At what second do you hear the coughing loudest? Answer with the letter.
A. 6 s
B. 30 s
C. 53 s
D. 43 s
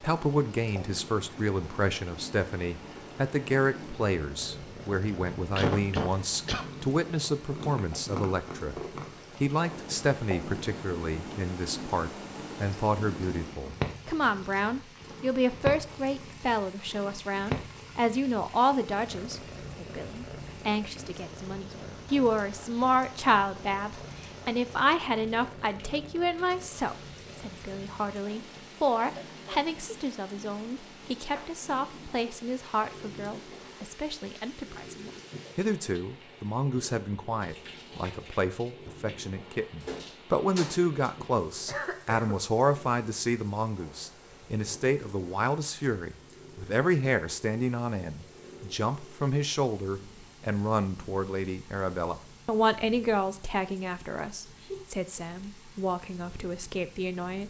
A.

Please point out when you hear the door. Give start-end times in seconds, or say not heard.
39.4-40.8.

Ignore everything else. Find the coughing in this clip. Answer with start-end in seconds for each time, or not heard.
5.5-6.7, 29.1-29.7, 41.6-42.4.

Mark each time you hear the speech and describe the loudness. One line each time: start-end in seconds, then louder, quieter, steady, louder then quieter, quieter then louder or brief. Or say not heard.
0.0-8.8 steady
9.4-57.4 steady.